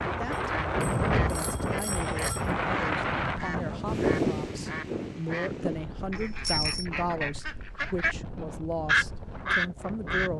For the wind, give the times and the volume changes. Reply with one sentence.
The wind can be heard from 0.0 to 10.3 s, getting quieter.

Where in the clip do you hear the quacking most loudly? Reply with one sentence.
The volume of the quacking peaks at 9 seconds.